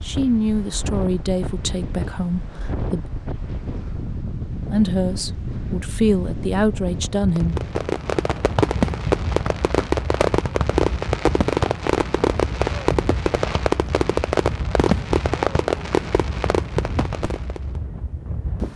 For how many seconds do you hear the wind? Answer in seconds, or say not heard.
19 s.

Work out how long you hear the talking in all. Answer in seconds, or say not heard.
6 s.